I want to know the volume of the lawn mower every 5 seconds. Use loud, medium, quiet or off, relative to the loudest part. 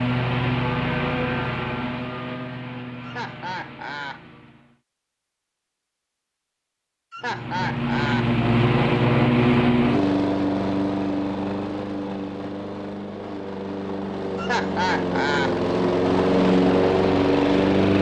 medium, loud, medium, loud.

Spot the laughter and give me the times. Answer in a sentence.
You can hear the laughter from 3.0 to 4.2 s, from 7.1 to 8.3 s and from 14.3 to 15.6 s.